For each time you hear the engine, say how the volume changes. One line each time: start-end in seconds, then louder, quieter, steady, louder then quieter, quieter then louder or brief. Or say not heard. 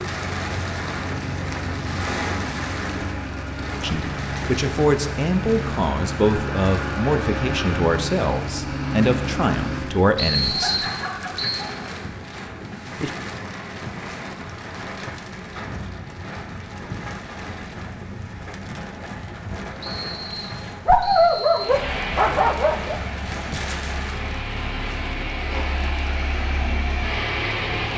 0.2-10.1 louder
21.6-27.9 quieter then louder.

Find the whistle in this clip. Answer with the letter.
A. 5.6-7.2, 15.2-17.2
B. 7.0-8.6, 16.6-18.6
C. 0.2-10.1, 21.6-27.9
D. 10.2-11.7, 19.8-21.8
D.